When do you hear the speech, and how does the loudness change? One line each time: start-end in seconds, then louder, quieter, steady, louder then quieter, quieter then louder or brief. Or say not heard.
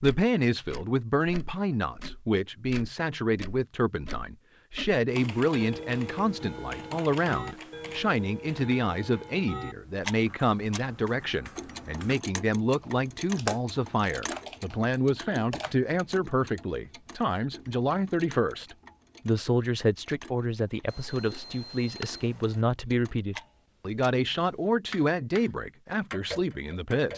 0.0-27.1 steady.